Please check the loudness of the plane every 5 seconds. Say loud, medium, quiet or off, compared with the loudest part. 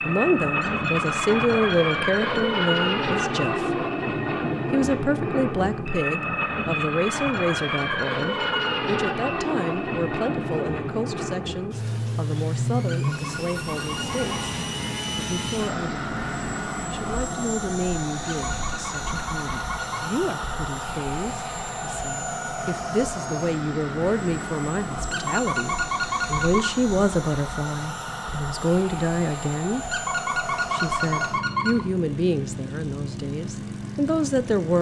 loud, loud, loud, medium, medium, medium, medium.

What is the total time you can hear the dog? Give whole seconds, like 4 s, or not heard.
10 s.